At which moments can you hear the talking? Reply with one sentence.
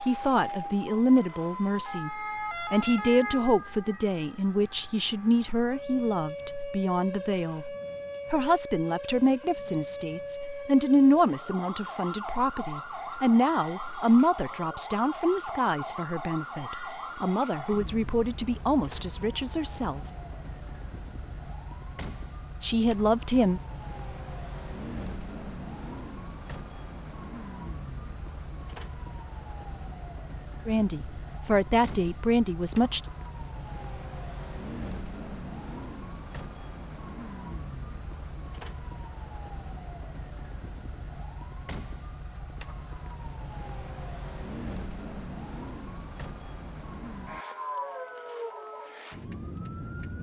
You can hear the talking from 0.0 to 20.1 s, from 22.6 to 23.6 s and from 30.6 to 33.0 s.